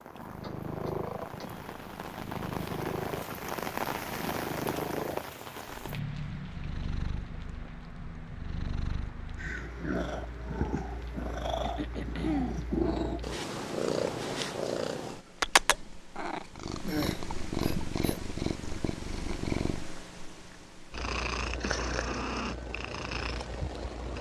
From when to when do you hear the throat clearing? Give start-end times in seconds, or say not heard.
0.4-1.6, 11.6-12.6, 16.8-18.2.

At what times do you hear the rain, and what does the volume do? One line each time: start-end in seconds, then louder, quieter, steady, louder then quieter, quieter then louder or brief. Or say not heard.
0.0-13.3 louder then quieter.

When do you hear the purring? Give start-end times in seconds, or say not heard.
0.1-24.1.